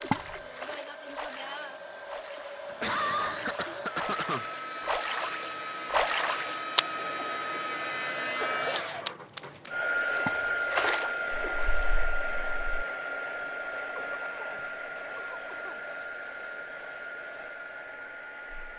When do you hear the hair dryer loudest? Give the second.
10 s.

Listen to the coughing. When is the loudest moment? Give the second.
3 s.